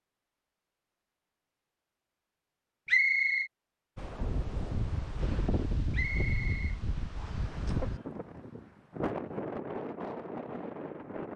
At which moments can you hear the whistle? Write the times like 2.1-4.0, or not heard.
2.9-3.5, 5.9-7.5.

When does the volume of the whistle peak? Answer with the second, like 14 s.
3 s.